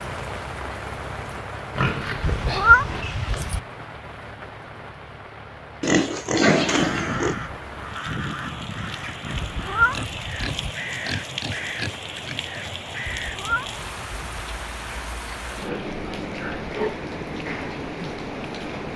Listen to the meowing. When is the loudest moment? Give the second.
3 s.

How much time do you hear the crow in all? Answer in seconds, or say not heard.
7 s.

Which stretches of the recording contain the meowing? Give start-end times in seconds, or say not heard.
2.2-3.6, 9.3-10.7, 13.1-14.4.